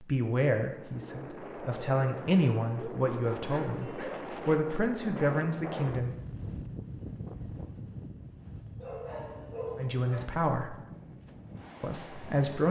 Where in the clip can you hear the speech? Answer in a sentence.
You can hear the speech from 0.0 to 6.2 s, from 9.8 to 10.8 s and from 11.8 to 12.6 s.